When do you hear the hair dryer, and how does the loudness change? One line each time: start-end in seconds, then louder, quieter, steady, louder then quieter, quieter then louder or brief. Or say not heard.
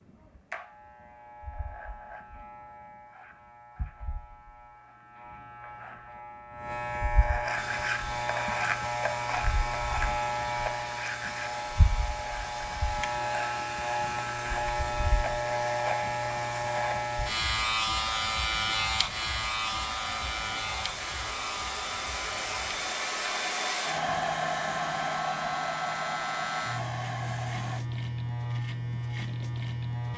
7.5-27.9 louder.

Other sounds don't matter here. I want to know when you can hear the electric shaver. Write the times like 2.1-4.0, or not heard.
0.0-30.1.